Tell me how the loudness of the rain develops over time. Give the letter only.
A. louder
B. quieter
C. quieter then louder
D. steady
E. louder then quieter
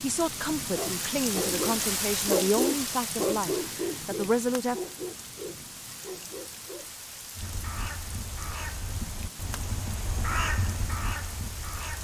B.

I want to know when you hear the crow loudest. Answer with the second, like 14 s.
10 s.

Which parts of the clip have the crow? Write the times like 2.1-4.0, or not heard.
7.3-12.0.